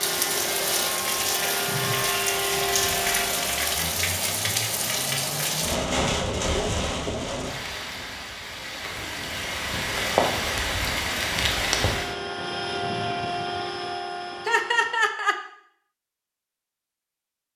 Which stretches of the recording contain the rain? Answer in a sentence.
You can hear the rain from 0.0 to 12.2 s.